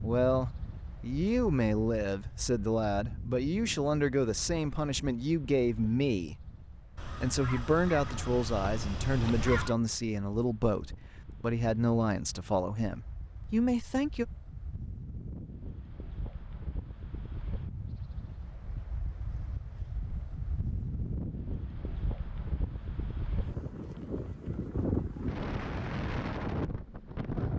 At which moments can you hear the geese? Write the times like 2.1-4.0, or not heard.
7.0-9.8.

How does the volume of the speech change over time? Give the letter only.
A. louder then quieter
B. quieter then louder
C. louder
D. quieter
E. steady
E.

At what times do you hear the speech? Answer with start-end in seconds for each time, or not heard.
0.0-6.5, 7.2-14.2.